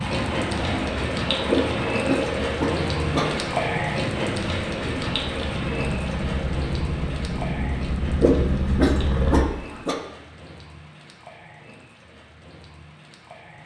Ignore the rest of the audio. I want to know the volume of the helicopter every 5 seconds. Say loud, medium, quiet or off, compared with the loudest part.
loud, loud, off.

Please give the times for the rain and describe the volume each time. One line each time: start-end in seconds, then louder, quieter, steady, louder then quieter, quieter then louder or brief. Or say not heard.
0.0-13.6 quieter.